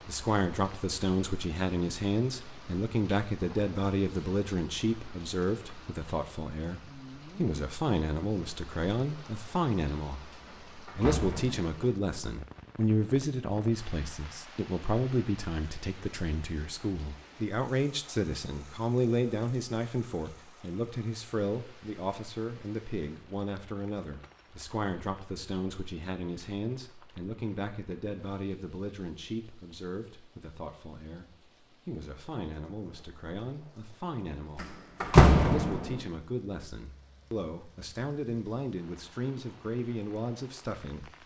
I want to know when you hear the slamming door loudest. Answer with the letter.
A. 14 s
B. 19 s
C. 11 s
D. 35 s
D.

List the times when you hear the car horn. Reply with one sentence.
You can't hear the car horn here.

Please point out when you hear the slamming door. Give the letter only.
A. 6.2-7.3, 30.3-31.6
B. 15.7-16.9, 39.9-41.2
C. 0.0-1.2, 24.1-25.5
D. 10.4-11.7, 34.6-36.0
D.